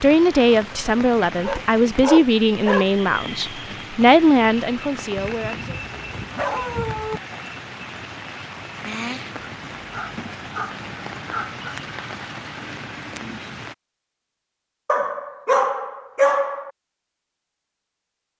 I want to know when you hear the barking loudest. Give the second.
16 s.